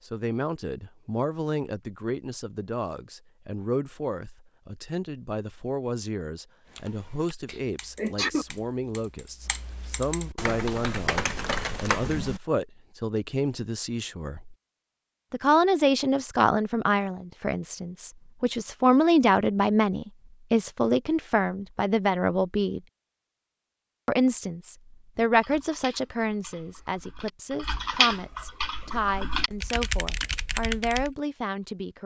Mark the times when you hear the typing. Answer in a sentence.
The typing can be heard from 6.7 to 12.4 s and from 25.1 to 31.1 s.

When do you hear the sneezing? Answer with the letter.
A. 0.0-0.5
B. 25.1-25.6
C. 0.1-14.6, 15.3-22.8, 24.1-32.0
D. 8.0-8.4
D.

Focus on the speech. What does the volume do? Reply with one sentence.
The volume of the speech goes up, then down.